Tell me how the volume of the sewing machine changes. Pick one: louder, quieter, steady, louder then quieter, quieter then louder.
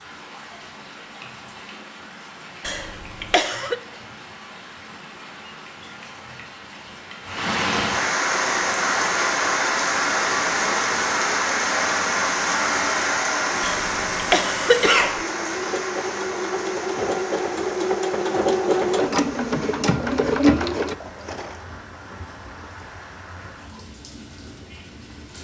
louder.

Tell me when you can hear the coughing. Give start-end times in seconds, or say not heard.
2.6-3.8, 13.6-15.2.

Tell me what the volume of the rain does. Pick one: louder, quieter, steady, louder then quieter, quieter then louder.
louder then quieter.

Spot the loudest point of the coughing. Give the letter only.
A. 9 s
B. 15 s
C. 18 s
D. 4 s
B.